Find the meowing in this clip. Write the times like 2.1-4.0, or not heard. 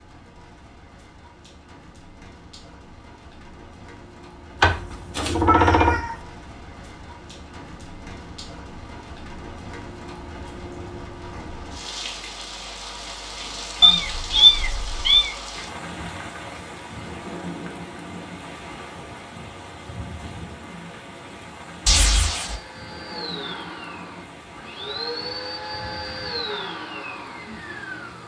4.6-6.2, 13.8-15.3, 21.9-22.6.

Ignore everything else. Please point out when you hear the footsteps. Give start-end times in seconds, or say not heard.
not heard.